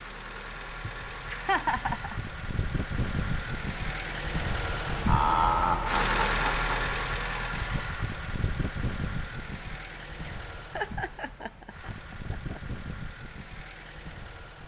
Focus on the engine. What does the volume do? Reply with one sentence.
The volume of the engine goes up, then down.